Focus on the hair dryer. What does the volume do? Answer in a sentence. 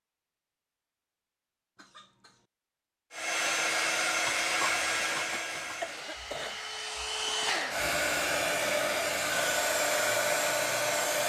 The volume of the hair dryer goes down, then up.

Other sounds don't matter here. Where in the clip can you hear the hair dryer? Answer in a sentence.
The hair dryer can be heard from 3.1 to 11.2 s.